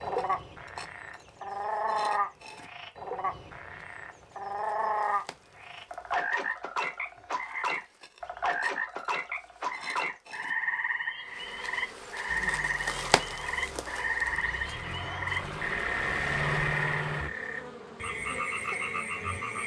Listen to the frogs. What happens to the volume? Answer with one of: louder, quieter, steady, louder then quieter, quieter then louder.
steady.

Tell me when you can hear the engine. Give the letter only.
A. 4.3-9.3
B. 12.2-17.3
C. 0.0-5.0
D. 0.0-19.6
B.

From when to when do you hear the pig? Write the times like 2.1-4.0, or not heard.
not heard.